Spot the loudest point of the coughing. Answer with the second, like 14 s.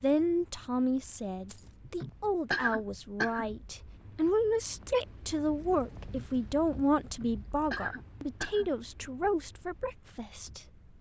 3 s.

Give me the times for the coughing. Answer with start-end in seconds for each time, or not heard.
1.9-3.5, 7.0-8.7.